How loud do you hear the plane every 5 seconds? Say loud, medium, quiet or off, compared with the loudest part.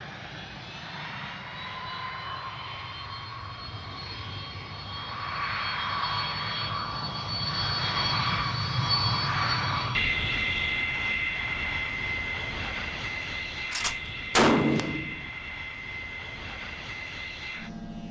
medium, loud, loud, medium.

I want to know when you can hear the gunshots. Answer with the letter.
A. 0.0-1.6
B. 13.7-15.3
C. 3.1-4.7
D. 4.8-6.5
B.